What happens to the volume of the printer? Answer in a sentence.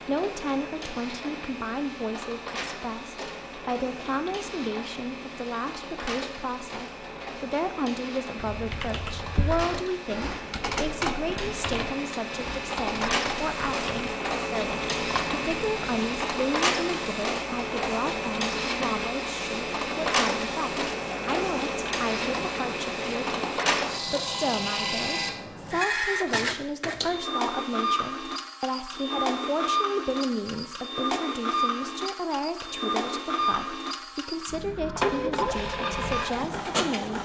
The loudness of the printer goes up.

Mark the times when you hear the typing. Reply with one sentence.
The typing can be heard from 8.3 to 16.2 s.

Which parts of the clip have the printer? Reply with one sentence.
The printer can be heard from 0.0 to 37.1 s.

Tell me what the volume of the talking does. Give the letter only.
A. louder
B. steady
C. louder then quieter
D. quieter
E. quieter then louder
B.